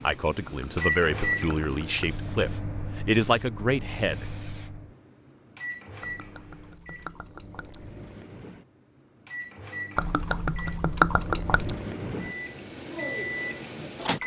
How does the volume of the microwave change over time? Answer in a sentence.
The loudness of the microwave goes down, then up.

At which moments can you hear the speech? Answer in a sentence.
The speech can be heard from 0.0 to 4.2 s.